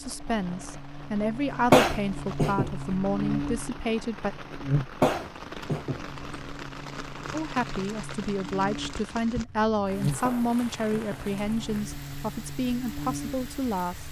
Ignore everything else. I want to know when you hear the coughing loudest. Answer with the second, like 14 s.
2 s.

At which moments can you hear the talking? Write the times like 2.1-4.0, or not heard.
0.0-4.3, 7.3-14.0.